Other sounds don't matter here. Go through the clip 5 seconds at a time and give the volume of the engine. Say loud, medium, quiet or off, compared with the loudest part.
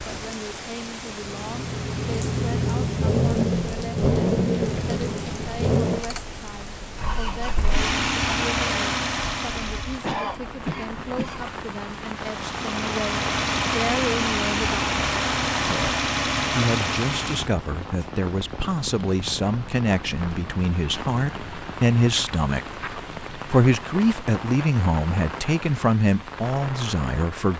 loud, loud, loud, loud, off, off.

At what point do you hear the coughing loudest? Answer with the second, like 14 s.
10 s.